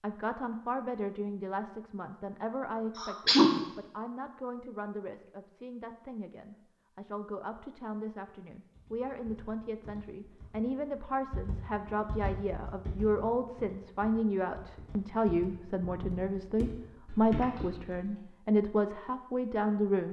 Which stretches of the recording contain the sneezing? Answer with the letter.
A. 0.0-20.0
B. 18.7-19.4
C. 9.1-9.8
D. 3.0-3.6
D.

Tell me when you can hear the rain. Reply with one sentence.
The rain can't be heard in this clip.